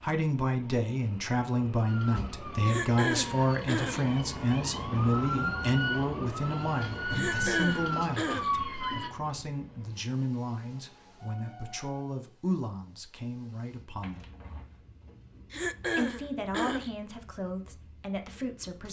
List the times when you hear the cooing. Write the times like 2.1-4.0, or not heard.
not heard.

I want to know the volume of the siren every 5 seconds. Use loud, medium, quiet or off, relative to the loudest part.
medium, loud, off, off.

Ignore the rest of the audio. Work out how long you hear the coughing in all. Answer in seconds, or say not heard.
4 s.